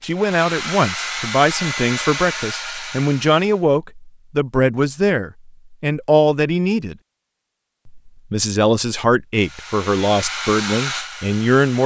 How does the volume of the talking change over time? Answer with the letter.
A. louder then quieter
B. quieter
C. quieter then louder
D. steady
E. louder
D.